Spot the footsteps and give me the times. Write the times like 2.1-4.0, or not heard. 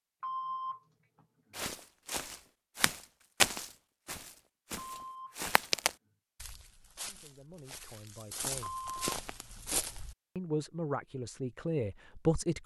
1.6-10.2.